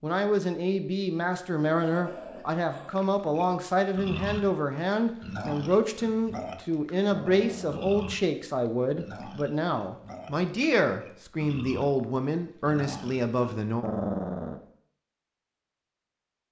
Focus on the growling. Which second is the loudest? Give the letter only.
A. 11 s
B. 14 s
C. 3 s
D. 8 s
B.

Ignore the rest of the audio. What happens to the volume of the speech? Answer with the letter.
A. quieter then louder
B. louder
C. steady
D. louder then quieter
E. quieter
C.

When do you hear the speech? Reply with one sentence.
The speech can be heard from 0.0 to 13.8 s.